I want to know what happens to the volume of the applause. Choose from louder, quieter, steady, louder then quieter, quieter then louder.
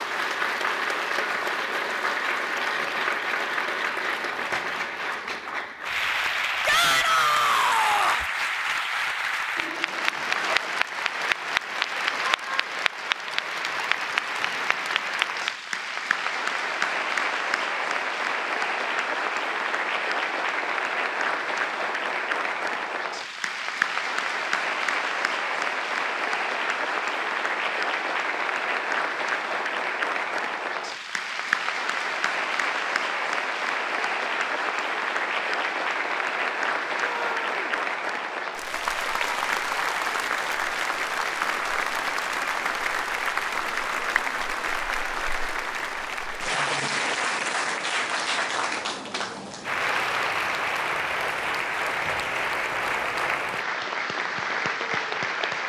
steady.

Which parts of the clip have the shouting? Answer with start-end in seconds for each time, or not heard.
6.7-8.2, 37.0-37.8.